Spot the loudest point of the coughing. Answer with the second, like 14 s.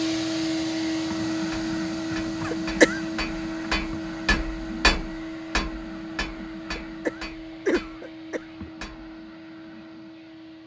3 s.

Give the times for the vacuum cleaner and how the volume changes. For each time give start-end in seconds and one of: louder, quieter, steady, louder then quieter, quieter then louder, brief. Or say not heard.
0.0-10.6 quieter.